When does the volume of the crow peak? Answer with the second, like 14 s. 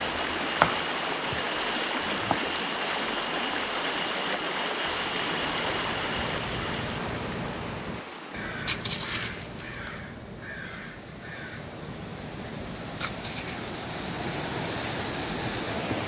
9 s.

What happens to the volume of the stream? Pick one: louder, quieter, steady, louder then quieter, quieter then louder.
quieter then louder.